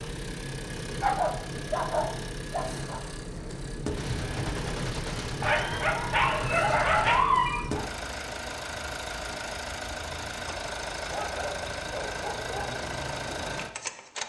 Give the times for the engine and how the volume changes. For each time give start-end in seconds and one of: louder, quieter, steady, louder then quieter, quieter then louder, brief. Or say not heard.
0.0-14.2 steady.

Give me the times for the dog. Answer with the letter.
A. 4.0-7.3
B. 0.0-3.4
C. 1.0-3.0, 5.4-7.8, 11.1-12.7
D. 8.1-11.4
C.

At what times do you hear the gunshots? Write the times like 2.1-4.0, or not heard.
4.0-7.3.